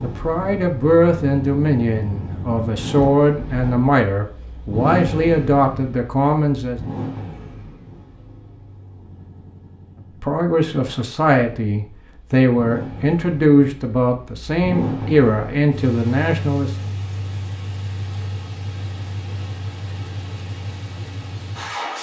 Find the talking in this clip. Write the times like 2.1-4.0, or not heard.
0.0-6.8, 10.2-16.8.